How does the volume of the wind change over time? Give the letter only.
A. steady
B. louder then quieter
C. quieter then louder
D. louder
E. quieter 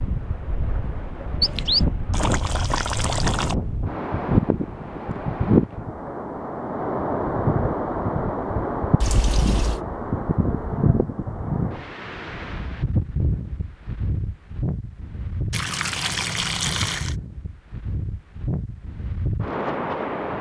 B.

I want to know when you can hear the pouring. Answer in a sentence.
You can hear the pouring from 1.4 to 3.5 s, from 9.0 to 9.8 s and from 15.5 to 17.1 s.